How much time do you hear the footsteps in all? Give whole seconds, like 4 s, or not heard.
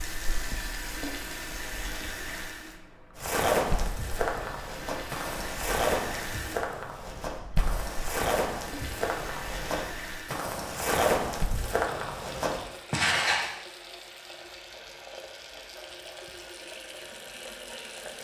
10 s.